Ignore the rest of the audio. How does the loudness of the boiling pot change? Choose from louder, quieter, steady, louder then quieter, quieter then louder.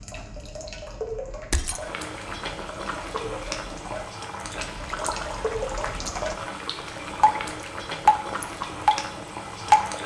steady.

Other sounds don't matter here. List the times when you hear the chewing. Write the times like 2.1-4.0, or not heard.
not heard.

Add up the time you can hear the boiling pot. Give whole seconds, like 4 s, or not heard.
8 s.